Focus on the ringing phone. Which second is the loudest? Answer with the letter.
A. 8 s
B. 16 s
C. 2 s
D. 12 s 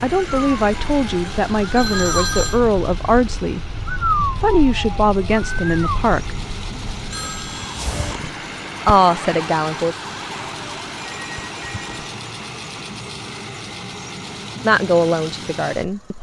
C.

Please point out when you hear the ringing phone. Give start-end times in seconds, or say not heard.
1.7-2.6, 7.1-8.2, 10.9-11.9.